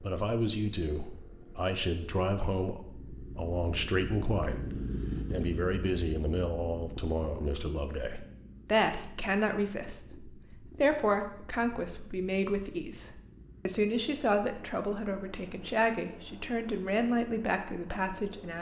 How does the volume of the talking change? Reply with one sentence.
The loudness of the talking stays about the same.